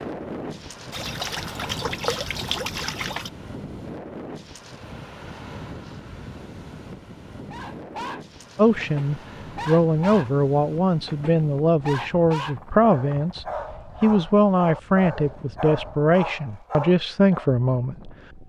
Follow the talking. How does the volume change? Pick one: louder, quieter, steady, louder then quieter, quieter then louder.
steady.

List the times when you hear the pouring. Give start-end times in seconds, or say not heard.
0.9-3.3.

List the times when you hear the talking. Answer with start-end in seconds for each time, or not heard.
8.6-18.1.